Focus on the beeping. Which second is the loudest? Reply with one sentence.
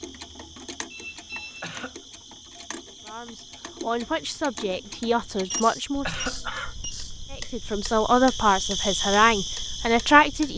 The volume of the beeping peaks at 6 seconds.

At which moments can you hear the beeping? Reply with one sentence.
The beeping can be heard from 0.9 to 1.6 s and from 5.5 to 7.2 s.